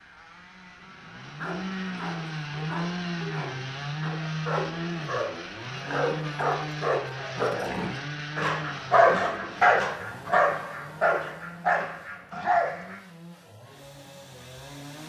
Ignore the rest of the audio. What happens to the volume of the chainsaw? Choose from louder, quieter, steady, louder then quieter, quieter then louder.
quieter.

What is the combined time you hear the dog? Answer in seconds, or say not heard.
12 s.